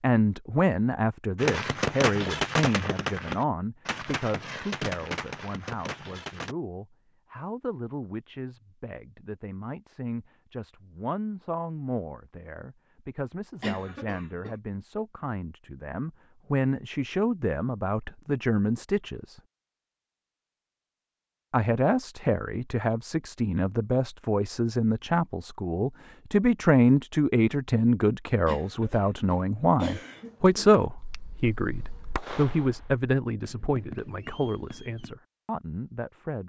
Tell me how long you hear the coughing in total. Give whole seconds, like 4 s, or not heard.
3 s.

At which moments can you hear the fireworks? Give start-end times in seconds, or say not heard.
1.4-6.5, 30.0-35.1.